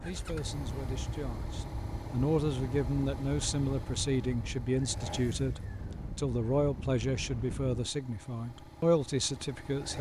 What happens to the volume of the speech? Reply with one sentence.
The volume of the speech goes up.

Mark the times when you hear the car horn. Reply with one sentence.
The car horn can't be heard in this clip.